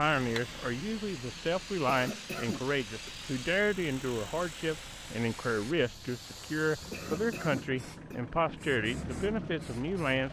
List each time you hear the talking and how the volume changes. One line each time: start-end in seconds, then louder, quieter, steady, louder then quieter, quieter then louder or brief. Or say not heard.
0.0-10.2 steady.